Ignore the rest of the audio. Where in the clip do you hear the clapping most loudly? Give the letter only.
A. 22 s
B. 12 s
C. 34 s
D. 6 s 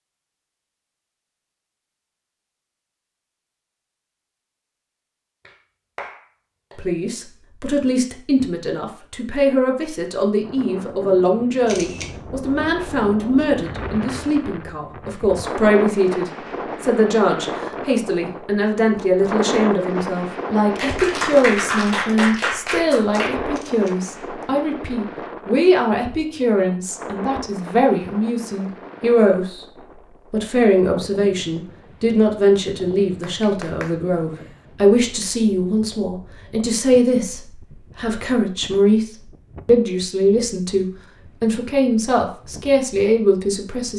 A.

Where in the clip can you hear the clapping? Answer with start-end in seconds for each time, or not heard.
5.5-6.8, 20.8-23.4, 33.0-33.9.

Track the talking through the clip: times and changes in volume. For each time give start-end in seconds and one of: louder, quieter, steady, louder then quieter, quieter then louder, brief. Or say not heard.
6.8-29.6 steady
30.3-43.9 steady.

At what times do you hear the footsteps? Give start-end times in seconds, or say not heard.
not heard.